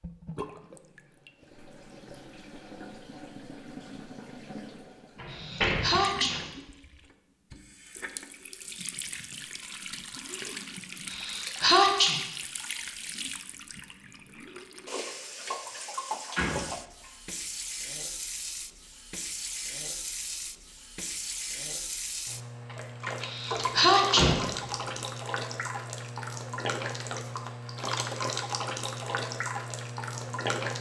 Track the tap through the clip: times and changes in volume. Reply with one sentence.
You can hear the tap from 0.0 to 30.7 s, getting louder.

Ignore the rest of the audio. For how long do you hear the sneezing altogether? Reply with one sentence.
You can hear the sneezing for 3 seconds altogether.